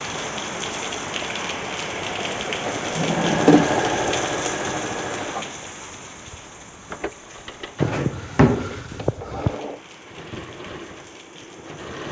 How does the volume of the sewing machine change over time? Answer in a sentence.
The volume of the sewing machine goes up, then down.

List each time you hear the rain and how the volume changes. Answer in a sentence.
You can hear the rain from 0.0 to 12.0 s, getting quieter.